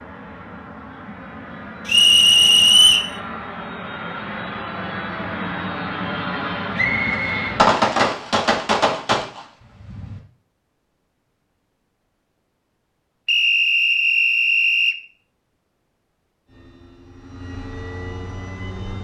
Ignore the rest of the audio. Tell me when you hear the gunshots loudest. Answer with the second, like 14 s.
8 s.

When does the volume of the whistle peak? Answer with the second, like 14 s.
3 s.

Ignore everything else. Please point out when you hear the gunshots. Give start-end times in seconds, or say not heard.
6.7-10.2.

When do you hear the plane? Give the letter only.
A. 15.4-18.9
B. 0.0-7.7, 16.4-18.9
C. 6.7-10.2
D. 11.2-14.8
B.